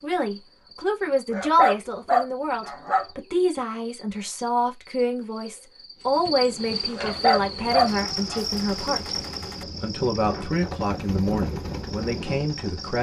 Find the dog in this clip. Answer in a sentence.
You can hear the dog from 1.3 to 3.0 s and from 7.0 to 8.4 s.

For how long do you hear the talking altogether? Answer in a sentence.
You can hear the talking for 12 seconds altogether.